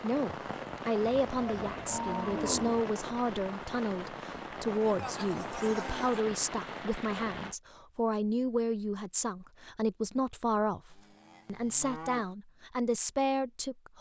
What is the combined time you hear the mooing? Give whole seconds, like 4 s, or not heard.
5 s.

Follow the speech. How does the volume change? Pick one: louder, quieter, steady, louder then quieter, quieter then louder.
steady.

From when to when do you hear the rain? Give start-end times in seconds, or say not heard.
0.0-7.5.